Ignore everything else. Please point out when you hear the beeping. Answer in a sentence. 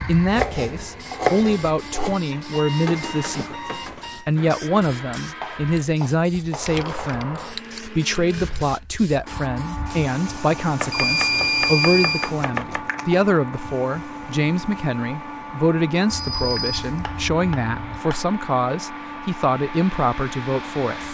The beeping can be heard from 2.3 to 4.2 s, from 10.9 to 12.3 s and from 16.1 to 18.0 s.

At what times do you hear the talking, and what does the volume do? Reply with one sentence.
The talking can be heard from 0.0 to 21.0 s, at a steady volume.